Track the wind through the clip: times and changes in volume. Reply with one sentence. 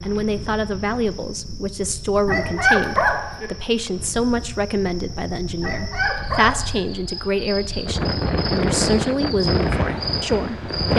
The wind can be heard from 0.0 to 10.9 s, getting louder.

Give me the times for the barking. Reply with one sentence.
You can hear the barking from 2.2 to 3.5 s and from 5.6 to 6.8 s.